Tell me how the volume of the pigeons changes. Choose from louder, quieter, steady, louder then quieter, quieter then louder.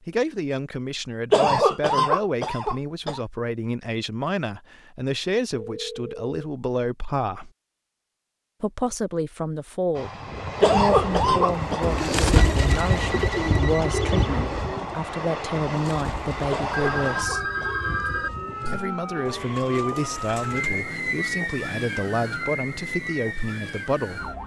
quieter.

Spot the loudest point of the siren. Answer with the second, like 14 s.
21 s.